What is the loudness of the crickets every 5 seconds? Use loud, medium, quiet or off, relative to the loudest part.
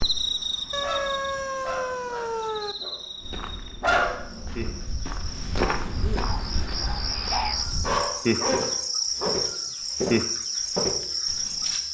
medium, loud, loud.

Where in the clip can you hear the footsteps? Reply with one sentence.
The footsteps can be heard from 3.2 to 11.8 s.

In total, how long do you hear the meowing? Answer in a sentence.
The meowing can be heard for 3 seconds in total.